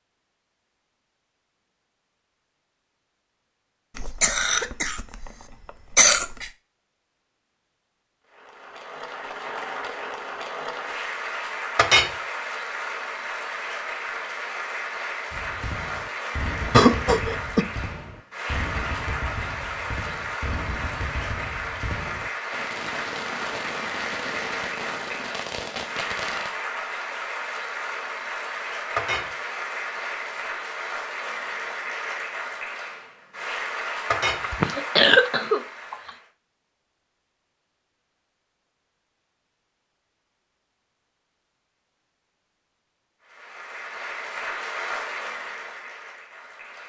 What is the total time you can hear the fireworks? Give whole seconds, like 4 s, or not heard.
11 s.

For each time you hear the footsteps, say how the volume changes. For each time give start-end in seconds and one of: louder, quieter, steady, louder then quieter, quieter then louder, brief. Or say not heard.
not heard.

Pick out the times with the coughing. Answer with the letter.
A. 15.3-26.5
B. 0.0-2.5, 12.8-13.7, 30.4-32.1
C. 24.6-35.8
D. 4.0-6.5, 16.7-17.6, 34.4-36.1
D.